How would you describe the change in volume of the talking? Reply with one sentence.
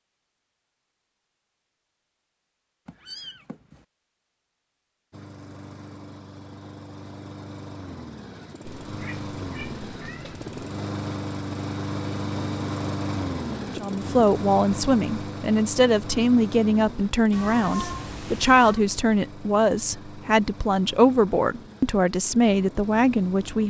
The loudness of the talking stays about the same.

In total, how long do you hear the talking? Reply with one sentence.
You can hear the talking for 10 seconds altogether.